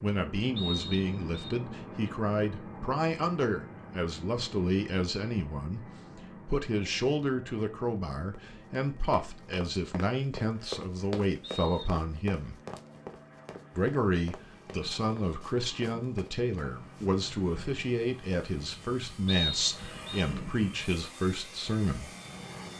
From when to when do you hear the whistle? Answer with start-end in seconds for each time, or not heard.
0.6-1.5, 11.4-11.8, 19.2-20.2.